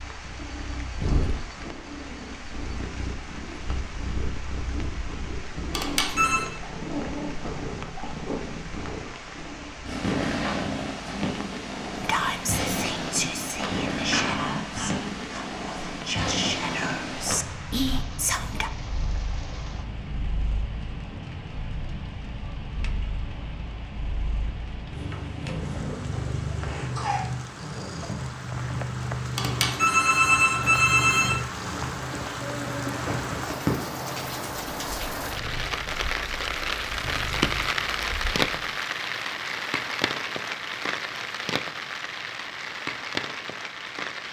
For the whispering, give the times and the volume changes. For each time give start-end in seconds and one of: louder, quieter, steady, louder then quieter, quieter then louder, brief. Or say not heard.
12.0-18.7 quieter then louder.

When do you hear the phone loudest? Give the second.
30 s.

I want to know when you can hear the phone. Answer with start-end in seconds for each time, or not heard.
5.7-6.5, 29.4-31.4.